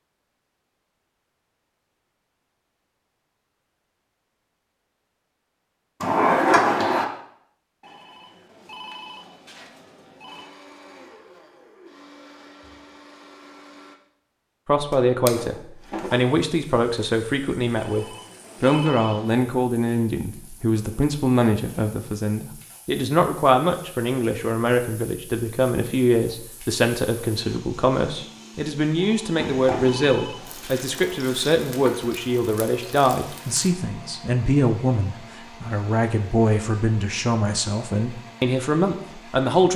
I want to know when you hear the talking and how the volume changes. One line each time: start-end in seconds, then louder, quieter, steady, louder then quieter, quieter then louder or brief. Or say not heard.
14.7-39.7 steady.